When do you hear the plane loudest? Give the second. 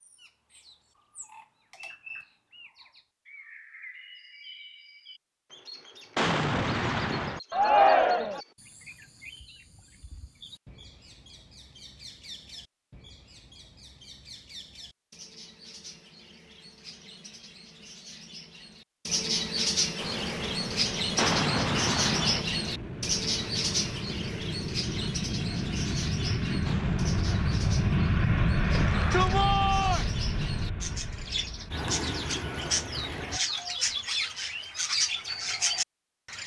28 s.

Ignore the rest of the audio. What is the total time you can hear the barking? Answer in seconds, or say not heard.
not heard.